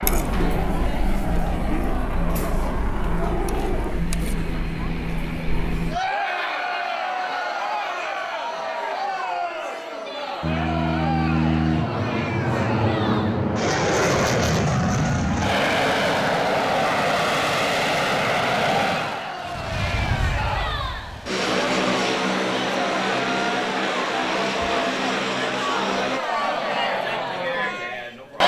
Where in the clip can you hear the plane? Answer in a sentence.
You can hear the plane from 0.0 to 6.0 s and from 10.4 to 26.2 s.